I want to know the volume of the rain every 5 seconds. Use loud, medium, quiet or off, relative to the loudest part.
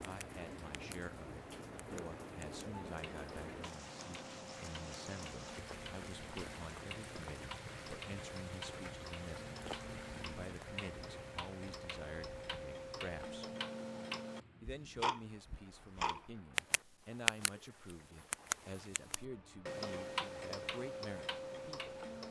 loud, loud, medium, quiet, off.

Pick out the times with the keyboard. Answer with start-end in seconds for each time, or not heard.
not heard.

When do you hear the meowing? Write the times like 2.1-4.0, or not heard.
not heard.